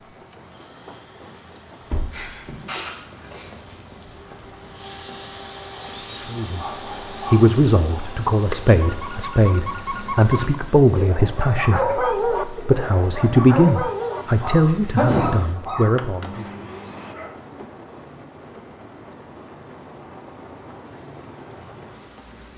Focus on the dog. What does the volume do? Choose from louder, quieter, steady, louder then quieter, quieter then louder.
louder then quieter.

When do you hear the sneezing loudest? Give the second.
15 s.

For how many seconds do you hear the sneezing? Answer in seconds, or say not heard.
2 s.